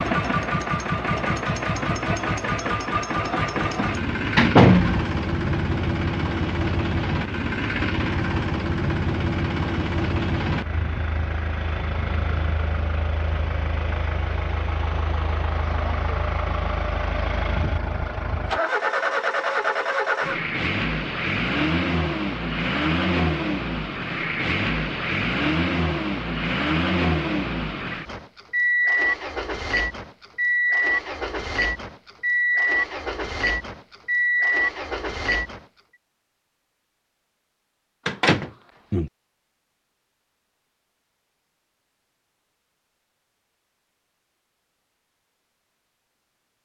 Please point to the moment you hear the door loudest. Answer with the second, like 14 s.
5 s.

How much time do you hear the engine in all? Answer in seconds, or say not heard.
36 s.